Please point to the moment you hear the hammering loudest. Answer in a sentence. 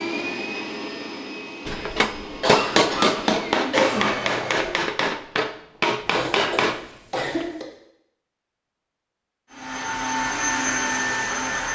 The loudest moment of the hammering is at 3 seconds.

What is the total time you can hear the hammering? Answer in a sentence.
The hammering can be heard for 6 seconds in total.